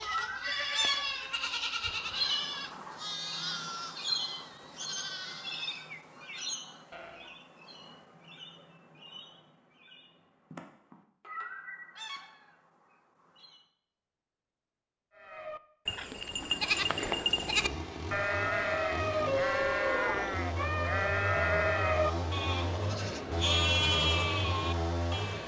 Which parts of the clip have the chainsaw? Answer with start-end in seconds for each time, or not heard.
16.3-25.4.